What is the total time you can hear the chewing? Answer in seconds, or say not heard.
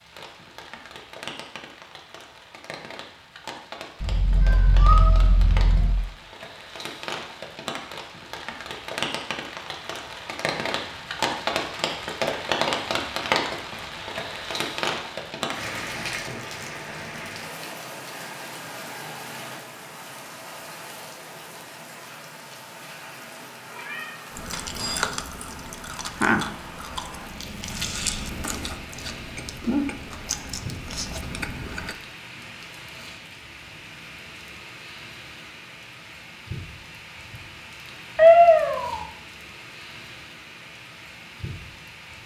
8 s.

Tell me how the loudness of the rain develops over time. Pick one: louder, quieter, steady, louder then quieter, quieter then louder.
louder then quieter.